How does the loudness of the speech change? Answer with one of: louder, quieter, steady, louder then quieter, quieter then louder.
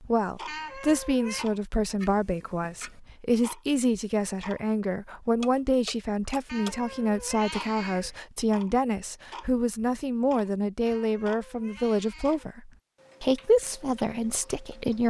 steady.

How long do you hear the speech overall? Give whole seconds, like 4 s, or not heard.
15 s.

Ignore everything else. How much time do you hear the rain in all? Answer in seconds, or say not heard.
not heard.